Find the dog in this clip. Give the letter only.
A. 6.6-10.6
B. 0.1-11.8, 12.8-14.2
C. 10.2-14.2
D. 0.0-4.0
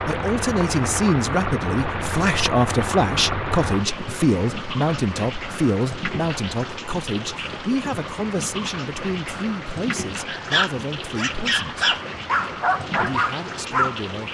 C.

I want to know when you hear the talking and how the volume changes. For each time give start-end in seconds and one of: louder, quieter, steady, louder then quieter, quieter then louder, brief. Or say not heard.
0.1-11.8 quieter
12.8-14.2 brief.